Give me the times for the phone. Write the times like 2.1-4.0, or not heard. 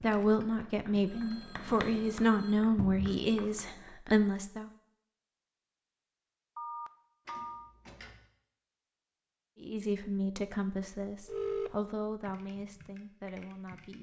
1.1-2.6, 6.5-7.8, 11.2-11.8.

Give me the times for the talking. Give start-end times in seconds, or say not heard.
0.0-4.7, 9.6-13.9.